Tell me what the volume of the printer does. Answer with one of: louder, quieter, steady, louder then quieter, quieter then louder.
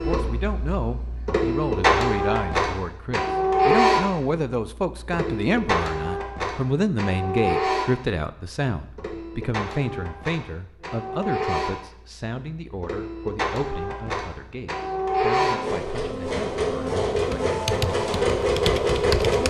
quieter then louder.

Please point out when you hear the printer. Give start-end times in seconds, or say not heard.
0.0-19.4.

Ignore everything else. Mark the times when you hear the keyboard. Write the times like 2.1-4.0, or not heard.
17.1-19.4.